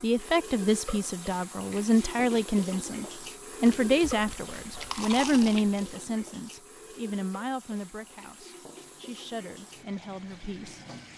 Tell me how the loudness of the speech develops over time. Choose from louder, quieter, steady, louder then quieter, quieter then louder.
quieter.